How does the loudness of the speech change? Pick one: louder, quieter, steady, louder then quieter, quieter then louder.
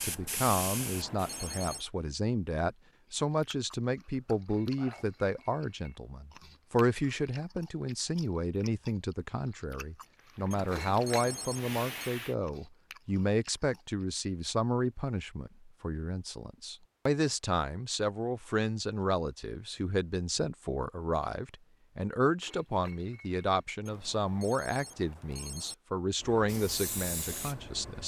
steady.